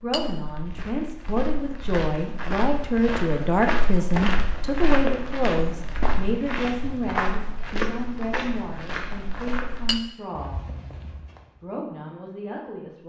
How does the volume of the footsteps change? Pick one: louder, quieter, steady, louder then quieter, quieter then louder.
louder then quieter.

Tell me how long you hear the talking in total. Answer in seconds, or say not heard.
12 s.